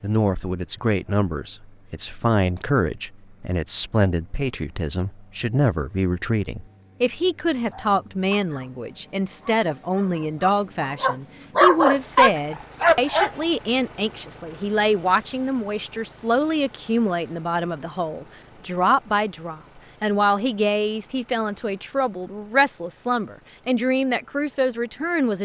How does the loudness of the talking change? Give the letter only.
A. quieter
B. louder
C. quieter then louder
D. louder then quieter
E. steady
E.